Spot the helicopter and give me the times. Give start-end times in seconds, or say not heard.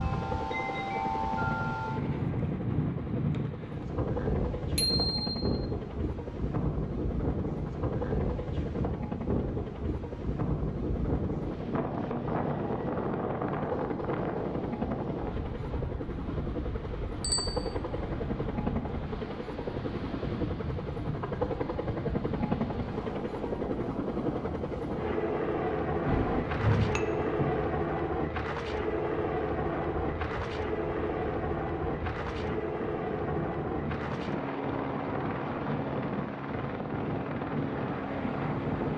0.1-38.9.